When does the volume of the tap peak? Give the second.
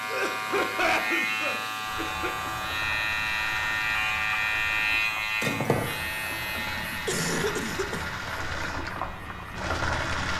10 s.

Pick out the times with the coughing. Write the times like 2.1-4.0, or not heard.
0.1-2.4, 6.5-8.1.